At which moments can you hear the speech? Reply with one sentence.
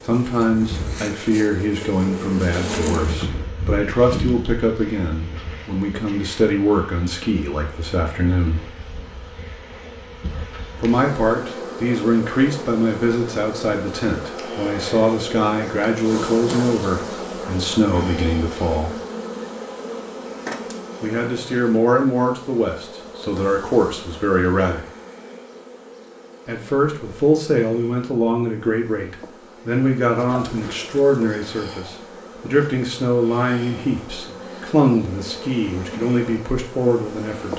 You can hear the speech from 0.0 to 8.7 s, from 10.8 to 18.9 s, from 21.0 to 24.9 s and from 26.4 to 37.5 s.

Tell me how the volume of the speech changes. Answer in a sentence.
The loudness of the speech stays about the same.